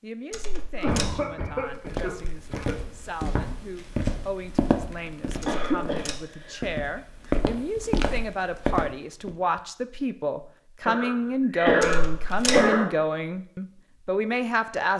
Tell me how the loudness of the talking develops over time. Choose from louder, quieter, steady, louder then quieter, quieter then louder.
louder.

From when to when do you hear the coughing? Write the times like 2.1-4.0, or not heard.
0.8-2.8, 5.5-6.6, 10.8-12.8.